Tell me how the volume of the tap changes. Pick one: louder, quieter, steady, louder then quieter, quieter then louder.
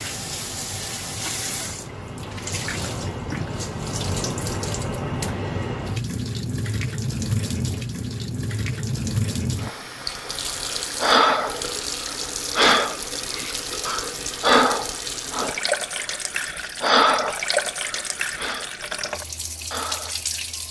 steady.